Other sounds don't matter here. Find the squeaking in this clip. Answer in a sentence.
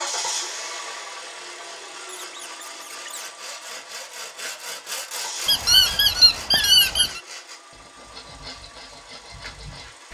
You can hear the squeaking from 2.2 to 3.3 s and from 5.5 to 7.2 s.